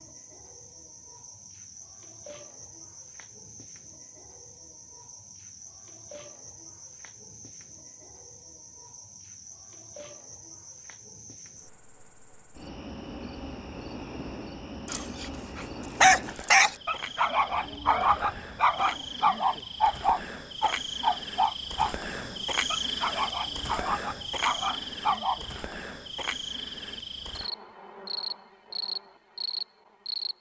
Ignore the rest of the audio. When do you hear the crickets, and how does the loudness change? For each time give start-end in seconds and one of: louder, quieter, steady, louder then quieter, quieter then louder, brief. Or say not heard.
0.0-30.3 louder.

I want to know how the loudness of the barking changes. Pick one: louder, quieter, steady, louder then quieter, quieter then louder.
quieter.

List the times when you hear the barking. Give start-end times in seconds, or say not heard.
14.8-25.4.